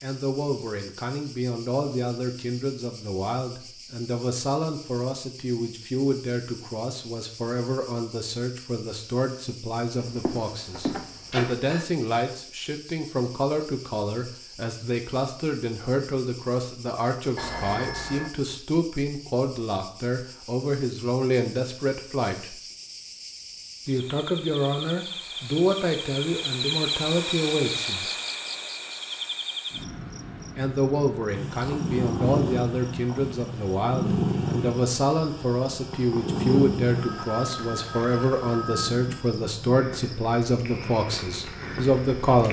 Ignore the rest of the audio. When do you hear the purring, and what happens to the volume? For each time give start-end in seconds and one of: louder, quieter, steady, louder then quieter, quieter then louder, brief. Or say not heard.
31.3-42.4 quieter.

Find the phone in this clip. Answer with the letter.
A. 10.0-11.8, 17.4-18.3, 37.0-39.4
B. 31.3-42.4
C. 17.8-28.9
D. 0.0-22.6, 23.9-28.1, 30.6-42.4
A.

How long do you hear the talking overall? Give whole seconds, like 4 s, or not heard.
39 s.